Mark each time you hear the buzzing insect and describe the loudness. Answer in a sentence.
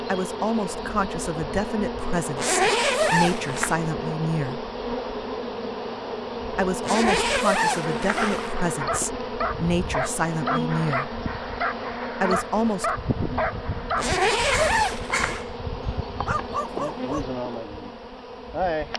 You can hear the buzzing insect from 0.0 to 18.9 s, at a steady volume.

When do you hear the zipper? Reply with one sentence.
The zipper can be heard from 2.4 to 3.8 s, from 6.8 to 8.5 s and from 13.9 to 15.4 s.